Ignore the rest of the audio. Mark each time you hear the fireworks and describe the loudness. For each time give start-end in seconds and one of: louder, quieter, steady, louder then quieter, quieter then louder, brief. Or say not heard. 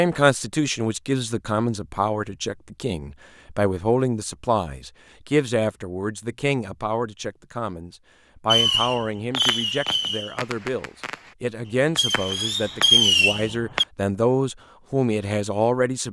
8.5-13.8 quieter then louder.